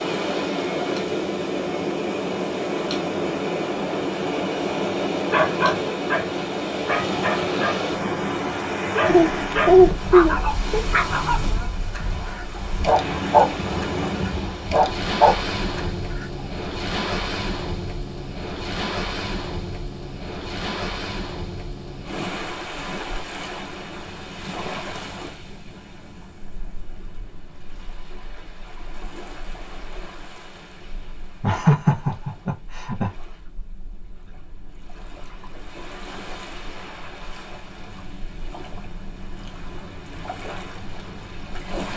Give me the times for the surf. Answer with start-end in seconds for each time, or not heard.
0.0-41.9.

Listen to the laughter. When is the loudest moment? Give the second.
10 s.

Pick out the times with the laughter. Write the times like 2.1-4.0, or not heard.
9.1-10.8, 31.4-33.1.